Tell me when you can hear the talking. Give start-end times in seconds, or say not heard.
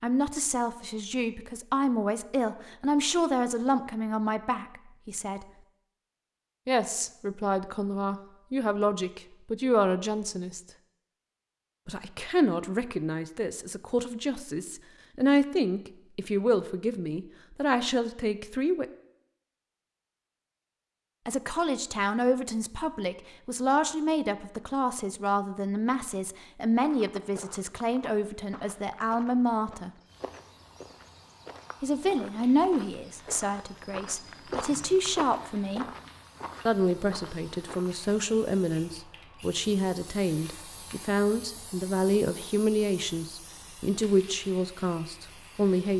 0.0-5.5, 6.7-10.6, 11.8-18.9, 21.2-29.9, 31.8-35.9, 36.6-45.9.